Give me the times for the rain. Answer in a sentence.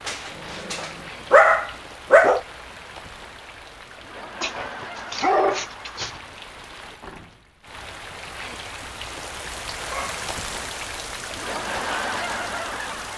You can hear the rain from 0.0 to 13.1 s.